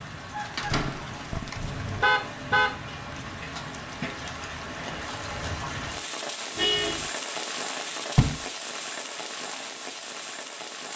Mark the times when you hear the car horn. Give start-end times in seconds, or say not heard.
1.6-2.8, 6.5-7.0.